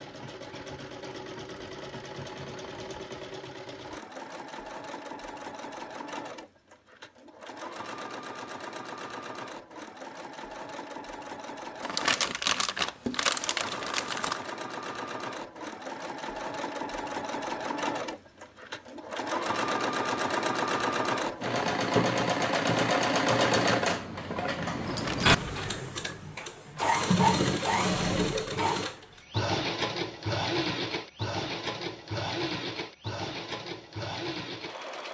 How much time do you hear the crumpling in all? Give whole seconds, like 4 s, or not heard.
3 s.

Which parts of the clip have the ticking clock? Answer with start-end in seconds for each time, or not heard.
not heard.